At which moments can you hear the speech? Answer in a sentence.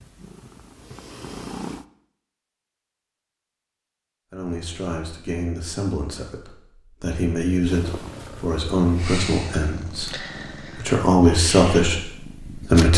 You can hear the speech from 4.3 to 12.9 s.